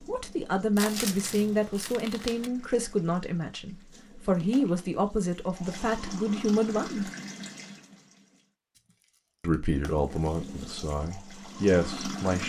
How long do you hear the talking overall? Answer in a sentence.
The talking can be heard for 10 seconds in total.